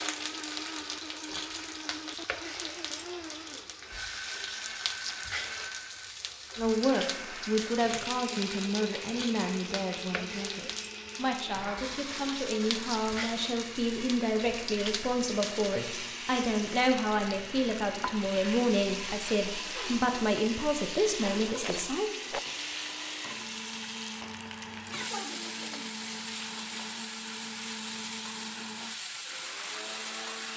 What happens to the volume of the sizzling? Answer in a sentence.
The loudness of the sizzling stays about the same.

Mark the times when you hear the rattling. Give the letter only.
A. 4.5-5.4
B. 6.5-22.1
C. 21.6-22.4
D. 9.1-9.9
C.